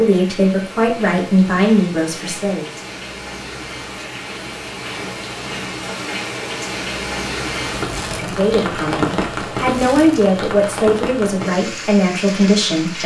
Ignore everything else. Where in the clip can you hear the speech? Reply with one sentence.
You can hear the speech from 0.0 to 2.6 s and from 8.1 to 13.0 s.